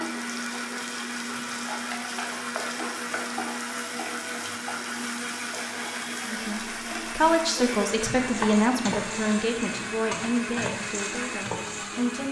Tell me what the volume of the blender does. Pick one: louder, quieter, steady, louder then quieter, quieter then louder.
steady.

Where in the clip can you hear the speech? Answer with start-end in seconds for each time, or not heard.
6.2-12.2.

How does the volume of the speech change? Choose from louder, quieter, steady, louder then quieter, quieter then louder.
quieter.